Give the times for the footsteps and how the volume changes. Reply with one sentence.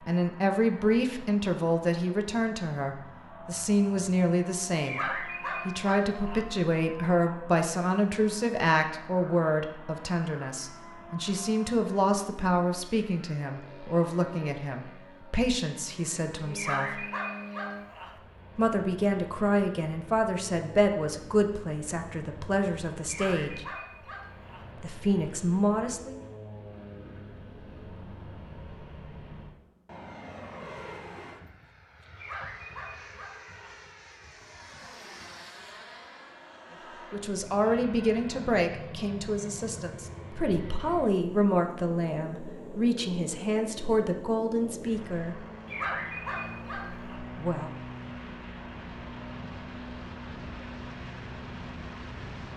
The footsteps can't be heard in this clip.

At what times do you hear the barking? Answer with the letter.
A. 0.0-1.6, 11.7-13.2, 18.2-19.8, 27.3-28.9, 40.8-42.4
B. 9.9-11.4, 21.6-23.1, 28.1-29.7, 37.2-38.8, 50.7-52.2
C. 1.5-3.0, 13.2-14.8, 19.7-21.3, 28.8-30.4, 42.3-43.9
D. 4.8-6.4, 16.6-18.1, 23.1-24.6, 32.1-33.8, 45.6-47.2
D.